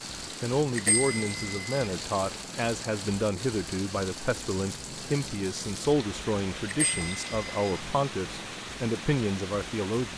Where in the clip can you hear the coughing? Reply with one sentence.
The coughing can't be heard in this clip.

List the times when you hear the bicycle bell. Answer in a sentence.
You can hear the bicycle bell from 0.8 to 1.9 s and from 6.7 to 7.8 s.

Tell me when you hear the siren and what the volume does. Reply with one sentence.
The siren can't be heard in this clip.